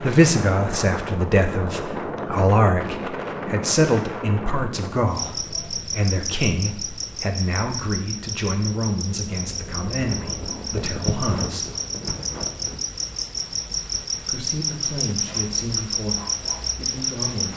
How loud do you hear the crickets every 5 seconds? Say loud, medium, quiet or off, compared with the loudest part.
off, medium, loud, loud.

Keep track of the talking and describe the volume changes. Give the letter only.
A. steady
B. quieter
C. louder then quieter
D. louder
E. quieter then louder
B.